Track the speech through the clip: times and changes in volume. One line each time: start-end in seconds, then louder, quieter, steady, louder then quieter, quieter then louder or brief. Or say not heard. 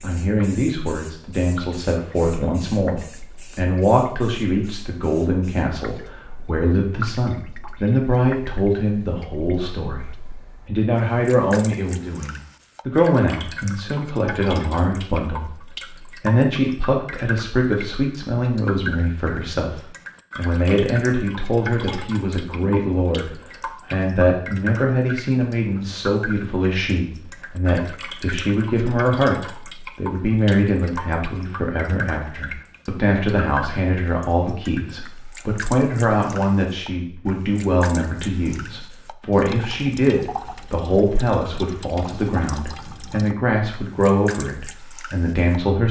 0.0-23.3 steady
23.9-45.8 steady.